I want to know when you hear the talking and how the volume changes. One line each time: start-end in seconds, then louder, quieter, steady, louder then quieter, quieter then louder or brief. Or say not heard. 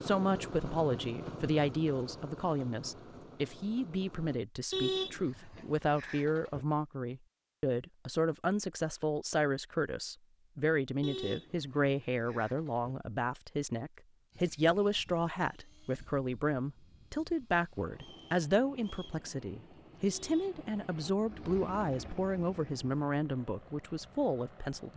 0.0-24.9 steady.